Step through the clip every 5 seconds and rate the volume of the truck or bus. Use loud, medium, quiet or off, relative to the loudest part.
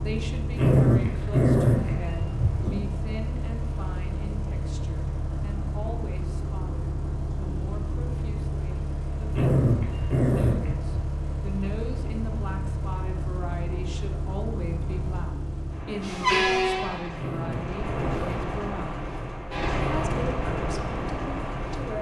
medium, medium, medium, loud, loud.